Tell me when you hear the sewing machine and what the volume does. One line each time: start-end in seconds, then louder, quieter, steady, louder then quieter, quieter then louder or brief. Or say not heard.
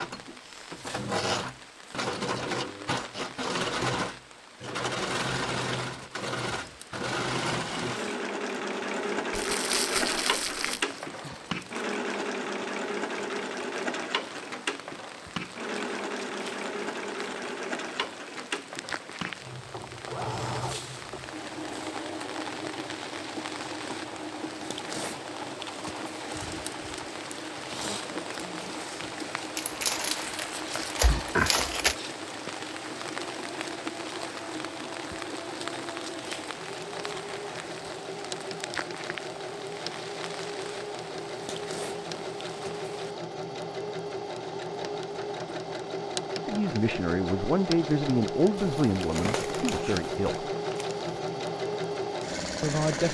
0.0-53.0 quieter then louder.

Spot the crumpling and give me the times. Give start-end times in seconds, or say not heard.
9.3-10.8, 29.6-31.9, 48.5-51.0.